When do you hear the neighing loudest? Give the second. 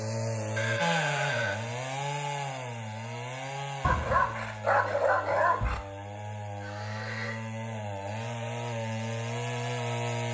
1 s.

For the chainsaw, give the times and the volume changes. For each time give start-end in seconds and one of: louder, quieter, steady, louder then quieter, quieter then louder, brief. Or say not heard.
0.0-10.2 quieter then louder.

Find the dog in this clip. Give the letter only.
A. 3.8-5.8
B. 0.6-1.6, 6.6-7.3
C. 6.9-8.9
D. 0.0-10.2
A.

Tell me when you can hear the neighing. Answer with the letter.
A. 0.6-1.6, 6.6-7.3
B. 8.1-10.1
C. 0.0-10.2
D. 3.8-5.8
A.